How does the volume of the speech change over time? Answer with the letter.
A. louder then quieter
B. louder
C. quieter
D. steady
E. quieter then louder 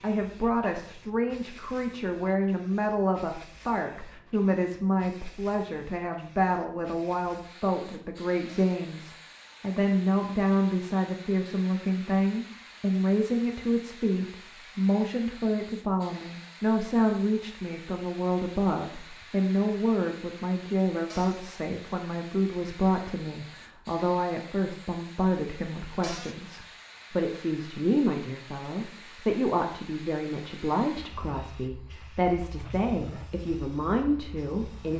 D.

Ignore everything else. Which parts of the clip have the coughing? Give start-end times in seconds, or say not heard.
not heard.